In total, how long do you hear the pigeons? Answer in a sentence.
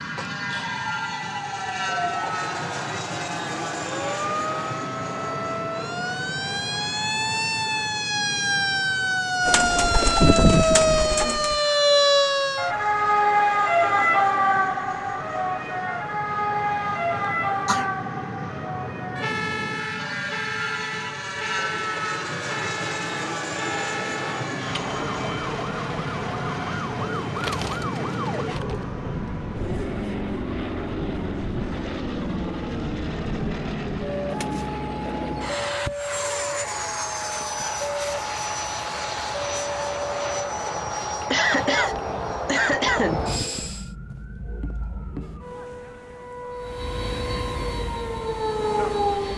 You can hear the pigeons for 5 seconds altogether.